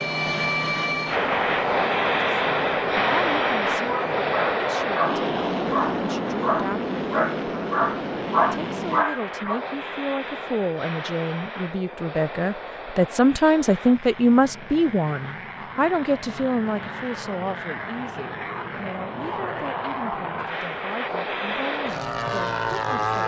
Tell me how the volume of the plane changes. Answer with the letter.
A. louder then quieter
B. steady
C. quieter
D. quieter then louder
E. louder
D.